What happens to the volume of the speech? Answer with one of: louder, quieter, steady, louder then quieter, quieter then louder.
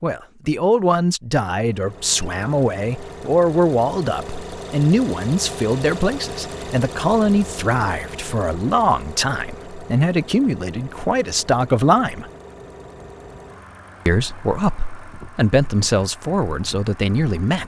steady.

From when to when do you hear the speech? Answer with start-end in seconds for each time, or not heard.
0.0-12.3, 14.1-17.6.